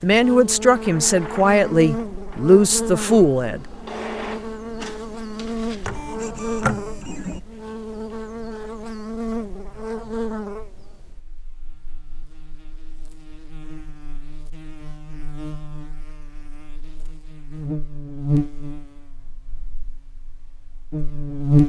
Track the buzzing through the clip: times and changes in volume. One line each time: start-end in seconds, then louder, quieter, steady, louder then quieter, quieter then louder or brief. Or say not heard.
0.0-21.6 quieter then louder.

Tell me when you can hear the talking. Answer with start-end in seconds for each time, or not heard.
0.0-3.6.